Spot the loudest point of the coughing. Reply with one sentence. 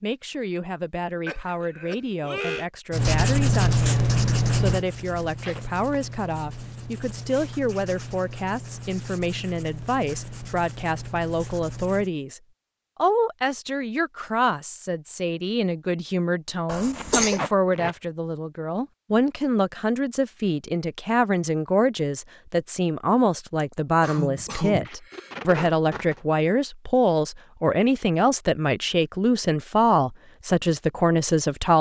The loudest moment of the coughing is at 17 seconds.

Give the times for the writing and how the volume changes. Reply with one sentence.
You can hear the writing from 2.9 to 12.1 s, getting quieter.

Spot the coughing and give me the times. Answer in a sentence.
The coughing can be heard from 1.2 to 2.6 s, from 16.6 to 17.4 s and from 23.6 to 25.4 s.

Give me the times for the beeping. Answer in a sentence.
You can't hear the beeping here.